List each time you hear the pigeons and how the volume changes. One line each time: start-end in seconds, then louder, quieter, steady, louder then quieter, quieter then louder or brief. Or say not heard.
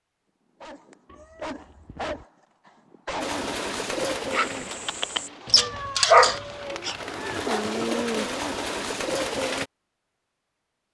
3.2-9.7 quieter then louder.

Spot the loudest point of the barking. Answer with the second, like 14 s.
6 s.